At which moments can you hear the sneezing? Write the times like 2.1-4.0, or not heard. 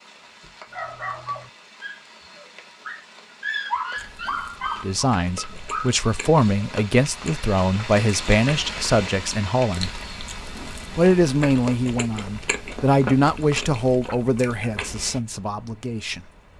not heard.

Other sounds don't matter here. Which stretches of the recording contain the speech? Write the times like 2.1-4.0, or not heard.
4.8-10.0, 10.9-16.2.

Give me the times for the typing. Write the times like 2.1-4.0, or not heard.
not heard.